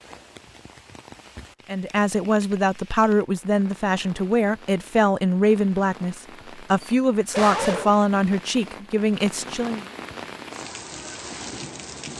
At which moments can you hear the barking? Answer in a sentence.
The barking can be heard from 6.8 to 8.0 s.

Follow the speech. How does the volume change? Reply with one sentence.
The loudness of the speech stays about the same.